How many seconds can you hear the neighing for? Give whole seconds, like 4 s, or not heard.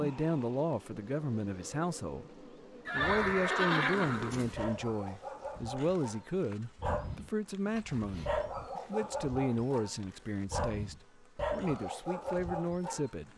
2 s.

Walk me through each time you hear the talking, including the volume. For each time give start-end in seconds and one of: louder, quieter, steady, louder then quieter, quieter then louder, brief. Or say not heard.
0.0-13.3 steady.